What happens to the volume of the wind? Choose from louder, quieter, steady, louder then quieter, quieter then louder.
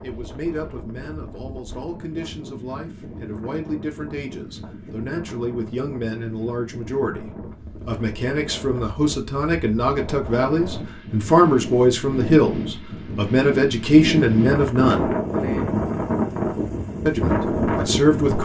louder.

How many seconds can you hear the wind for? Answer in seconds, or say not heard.
18 s.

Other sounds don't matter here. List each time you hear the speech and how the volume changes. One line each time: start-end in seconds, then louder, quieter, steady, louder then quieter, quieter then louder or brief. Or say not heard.
0.0-15.1 louder
17.1-18.3 brief.